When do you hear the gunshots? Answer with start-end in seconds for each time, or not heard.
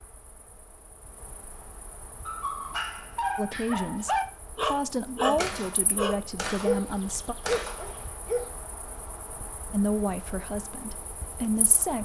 5.3-8.2.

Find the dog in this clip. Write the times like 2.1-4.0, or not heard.
2.2-8.5.